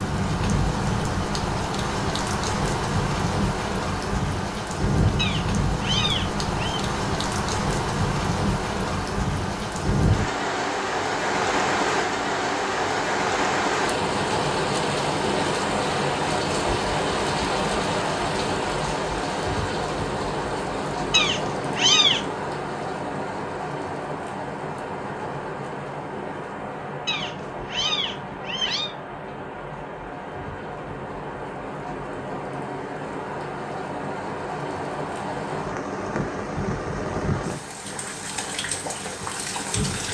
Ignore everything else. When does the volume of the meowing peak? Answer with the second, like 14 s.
22 s.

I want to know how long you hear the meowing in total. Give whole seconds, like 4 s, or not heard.
5 s.